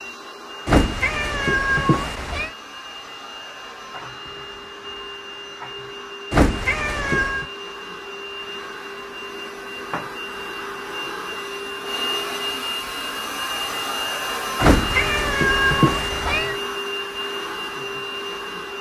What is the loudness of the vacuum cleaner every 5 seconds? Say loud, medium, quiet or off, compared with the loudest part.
medium, medium, loud, loud.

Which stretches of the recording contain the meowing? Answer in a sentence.
You can hear the meowing from 0.7 to 2.5 s, from 6.3 to 7.5 s and from 14.6 to 16.6 s.